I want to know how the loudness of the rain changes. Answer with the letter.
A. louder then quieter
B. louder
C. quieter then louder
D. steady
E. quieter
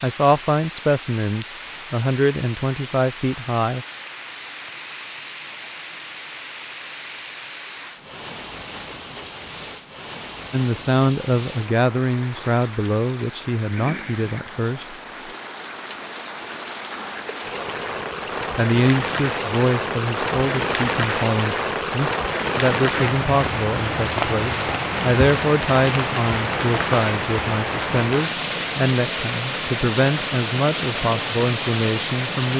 B.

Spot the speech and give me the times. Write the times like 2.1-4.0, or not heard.
0.0-3.9, 10.5-14.9, 18.6-32.5.